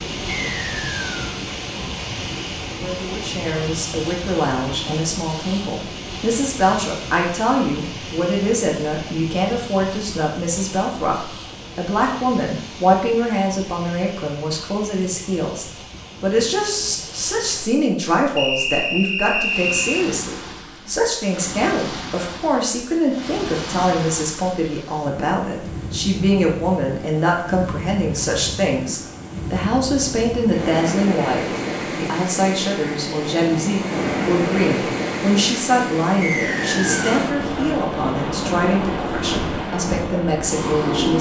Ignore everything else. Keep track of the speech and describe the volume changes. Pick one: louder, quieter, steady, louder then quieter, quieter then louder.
steady.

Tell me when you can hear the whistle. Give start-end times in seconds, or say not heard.
0.5-1.2, 18.4-20.1, 36.2-37.1.